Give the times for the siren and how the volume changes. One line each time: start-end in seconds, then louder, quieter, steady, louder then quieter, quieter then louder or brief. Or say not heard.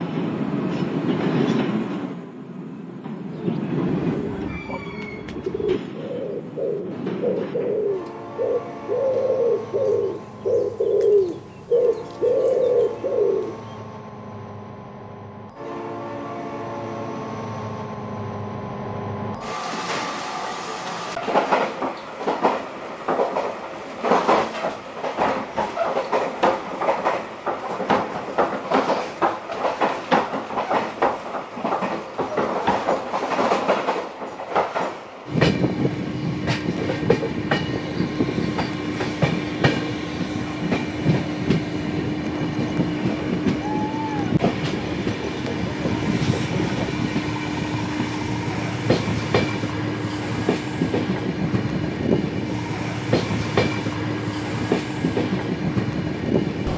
not heard.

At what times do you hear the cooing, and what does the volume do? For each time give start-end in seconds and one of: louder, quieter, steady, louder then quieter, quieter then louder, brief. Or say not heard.
3.3-13.6 louder.